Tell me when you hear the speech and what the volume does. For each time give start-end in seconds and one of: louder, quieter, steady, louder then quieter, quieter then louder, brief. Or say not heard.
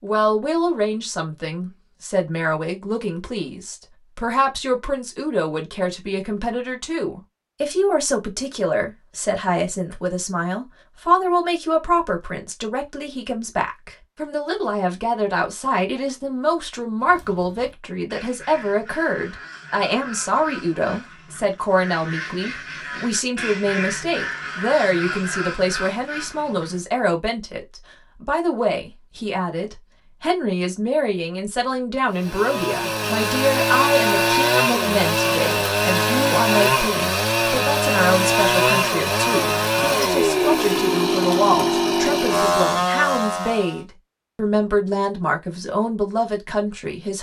0.0-47.1 steady.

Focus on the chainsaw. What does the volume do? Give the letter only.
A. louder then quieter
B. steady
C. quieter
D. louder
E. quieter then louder
B.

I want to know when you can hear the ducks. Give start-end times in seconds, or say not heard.
17.0-26.9.